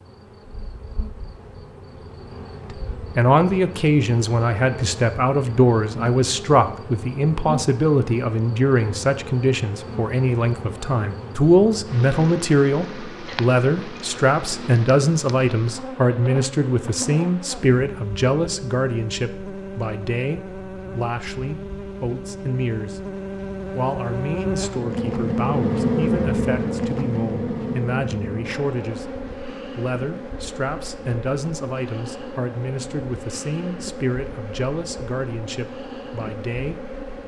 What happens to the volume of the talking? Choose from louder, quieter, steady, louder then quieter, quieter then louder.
quieter.